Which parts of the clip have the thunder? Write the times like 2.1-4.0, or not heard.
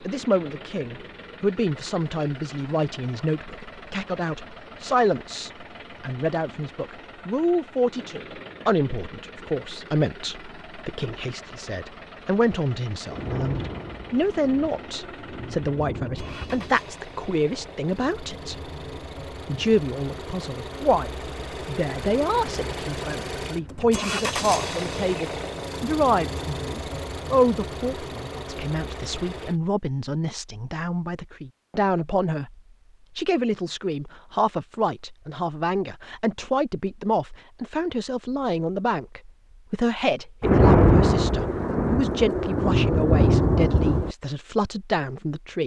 13.1-16.8, 40.4-44.1.